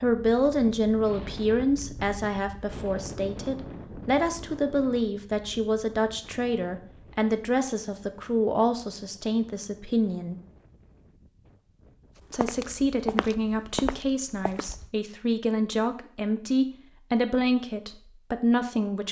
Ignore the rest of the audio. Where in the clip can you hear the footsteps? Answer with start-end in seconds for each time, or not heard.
12.3-14.9.